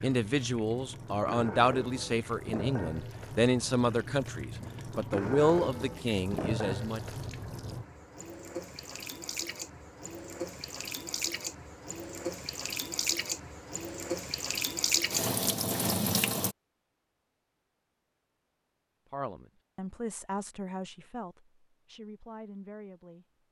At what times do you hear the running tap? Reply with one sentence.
You can hear the running tap from 0.0 to 16.6 s.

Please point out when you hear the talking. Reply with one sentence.
The talking can be heard from 0.0 to 7.0 s and from 19.1 to 23.2 s.